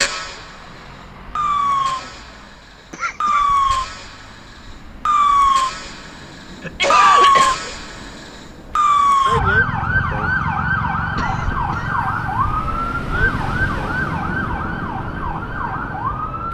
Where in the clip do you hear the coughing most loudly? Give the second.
7 s.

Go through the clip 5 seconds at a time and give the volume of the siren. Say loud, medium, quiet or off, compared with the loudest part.
medium, loud, medium, medium.